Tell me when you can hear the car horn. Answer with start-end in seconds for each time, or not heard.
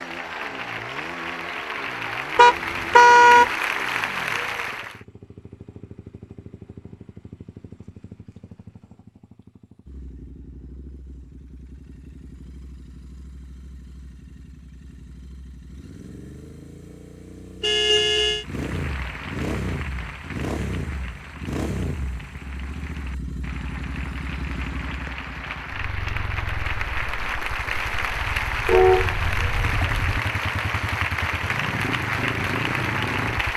2.4-3.5, 17.6-18.4, 28.6-30.2.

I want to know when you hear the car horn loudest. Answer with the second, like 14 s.
3 s.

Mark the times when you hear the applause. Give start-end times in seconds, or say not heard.
0.0-5.0, 18.4-33.5.